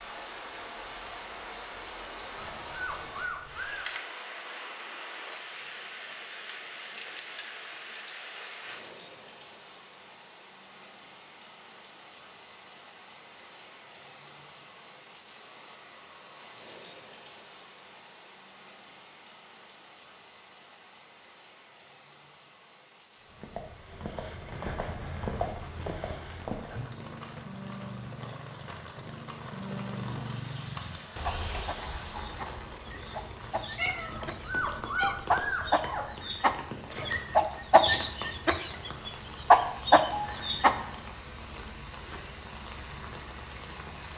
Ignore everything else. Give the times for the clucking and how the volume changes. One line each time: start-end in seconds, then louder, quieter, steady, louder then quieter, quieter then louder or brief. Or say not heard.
31.2-40.8 louder.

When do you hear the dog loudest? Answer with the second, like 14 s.
35 s.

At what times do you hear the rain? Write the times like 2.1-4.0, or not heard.
0.0-44.1.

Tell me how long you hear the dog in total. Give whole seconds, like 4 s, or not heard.
4 s.